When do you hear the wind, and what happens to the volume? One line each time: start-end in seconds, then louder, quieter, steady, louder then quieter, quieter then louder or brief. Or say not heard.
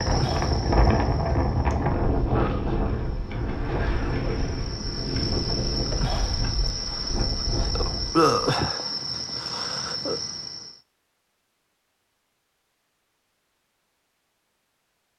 0.0-8.3 quieter.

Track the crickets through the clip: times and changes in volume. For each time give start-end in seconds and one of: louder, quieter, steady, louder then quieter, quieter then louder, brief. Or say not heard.
0.0-10.8 louder.